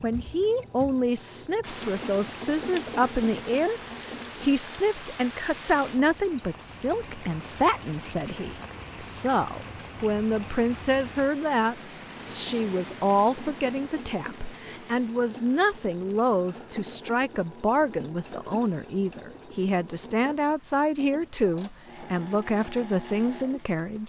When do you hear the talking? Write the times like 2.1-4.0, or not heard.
0.0-24.0.